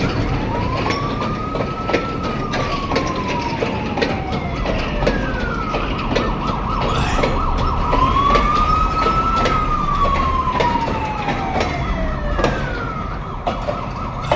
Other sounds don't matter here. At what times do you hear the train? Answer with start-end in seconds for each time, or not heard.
0.0-14.3.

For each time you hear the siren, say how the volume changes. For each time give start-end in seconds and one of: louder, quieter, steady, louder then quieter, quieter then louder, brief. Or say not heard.
0.0-14.3 louder then quieter.